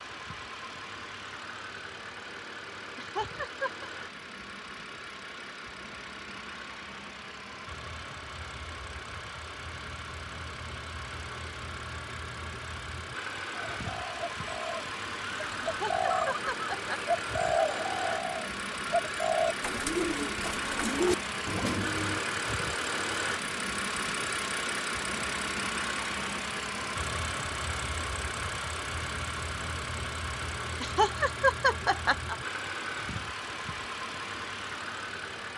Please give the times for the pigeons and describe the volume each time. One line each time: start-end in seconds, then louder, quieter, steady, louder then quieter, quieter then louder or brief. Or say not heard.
13.5-22.2 louder.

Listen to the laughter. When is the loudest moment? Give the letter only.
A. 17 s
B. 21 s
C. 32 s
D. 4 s
C.